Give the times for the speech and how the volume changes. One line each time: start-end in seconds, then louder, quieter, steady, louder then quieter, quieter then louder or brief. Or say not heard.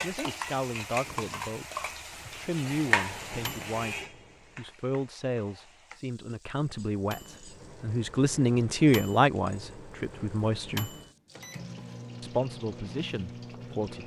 0.0-10.9 louder
12.2-14.0 brief.